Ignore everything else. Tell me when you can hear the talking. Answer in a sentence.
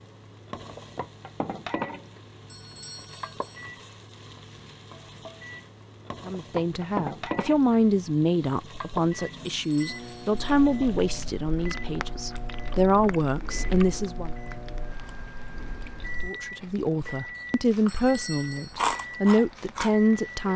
The talking can be heard from 6.2 to 14.3 s and from 16.2 to 20.5 s.